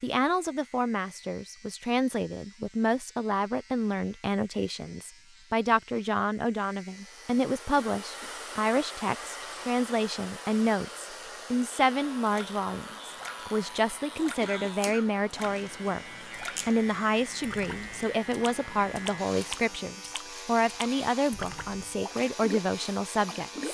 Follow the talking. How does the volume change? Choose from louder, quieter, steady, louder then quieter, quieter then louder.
steady.